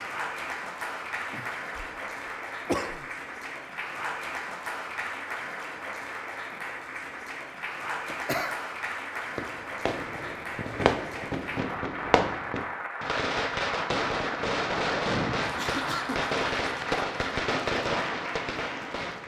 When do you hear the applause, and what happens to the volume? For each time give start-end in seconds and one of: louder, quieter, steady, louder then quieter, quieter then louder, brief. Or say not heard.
0.0-19.2 steady.